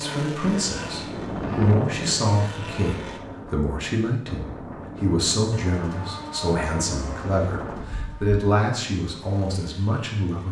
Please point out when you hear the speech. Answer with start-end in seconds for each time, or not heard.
0.0-10.4.